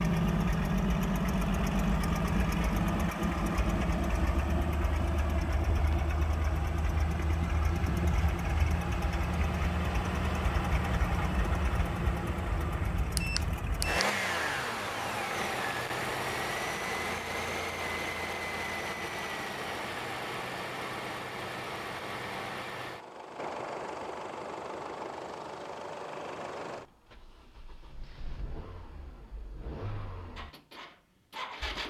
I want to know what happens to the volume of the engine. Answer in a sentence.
The loudness of the engine goes down.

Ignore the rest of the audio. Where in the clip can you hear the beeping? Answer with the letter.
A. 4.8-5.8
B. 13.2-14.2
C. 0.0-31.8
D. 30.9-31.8
B.